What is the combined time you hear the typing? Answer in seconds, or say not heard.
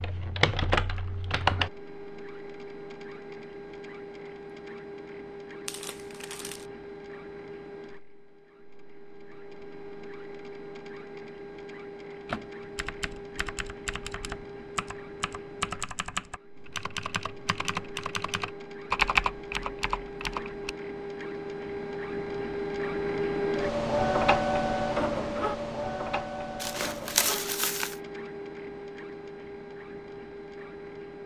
10 s.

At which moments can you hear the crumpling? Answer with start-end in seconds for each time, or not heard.
5.7-6.7, 26.6-28.0.